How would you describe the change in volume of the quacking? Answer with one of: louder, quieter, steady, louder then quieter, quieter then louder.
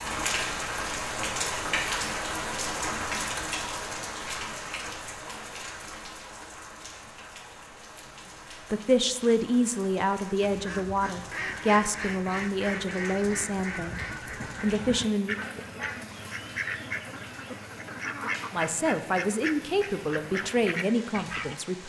steady.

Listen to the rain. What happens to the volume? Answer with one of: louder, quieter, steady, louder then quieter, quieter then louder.
quieter.